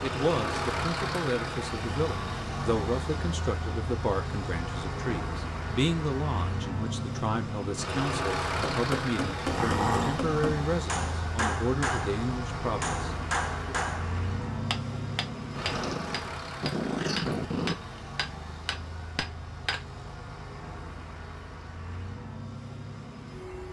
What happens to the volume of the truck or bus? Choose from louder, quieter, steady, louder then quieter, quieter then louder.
quieter.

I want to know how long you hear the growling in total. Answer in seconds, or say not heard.
3 s.